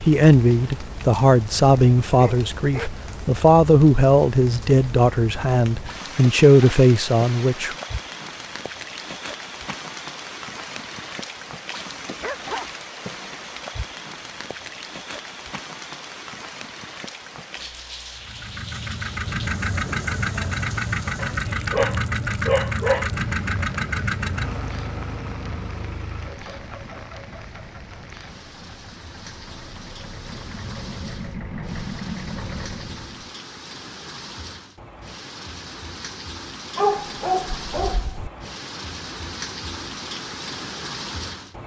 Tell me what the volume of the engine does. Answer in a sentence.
The loudness of the engine goes down, then up.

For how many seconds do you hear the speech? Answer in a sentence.
The speech can be heard for 8 seconds in total.